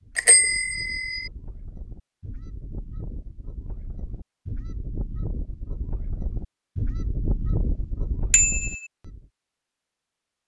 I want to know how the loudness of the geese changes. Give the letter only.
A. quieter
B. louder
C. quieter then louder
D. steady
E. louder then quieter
B.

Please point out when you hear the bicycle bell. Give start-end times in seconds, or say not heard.
0.1-1.3, 8.3-8.8.